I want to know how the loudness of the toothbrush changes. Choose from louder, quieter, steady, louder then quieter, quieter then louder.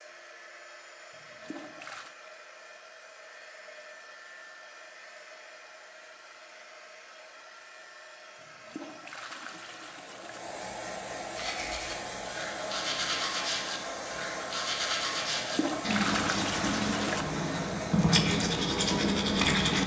louder.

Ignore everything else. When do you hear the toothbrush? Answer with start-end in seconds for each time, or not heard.
11.3-19.8.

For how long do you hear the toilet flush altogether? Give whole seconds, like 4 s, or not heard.
5 s.